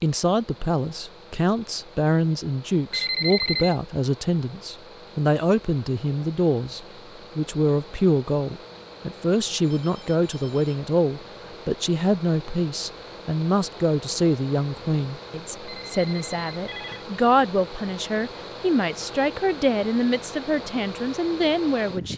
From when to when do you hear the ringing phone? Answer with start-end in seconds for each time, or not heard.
2.9-3.8, 9.6-10.8, 15.7-17.1.